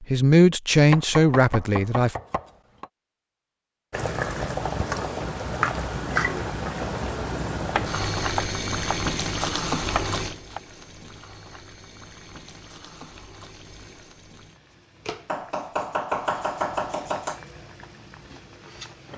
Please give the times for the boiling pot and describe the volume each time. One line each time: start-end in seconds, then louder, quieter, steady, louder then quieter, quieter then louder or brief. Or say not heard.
3.9-19.1 quieter.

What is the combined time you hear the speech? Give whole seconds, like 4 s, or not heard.
2 s.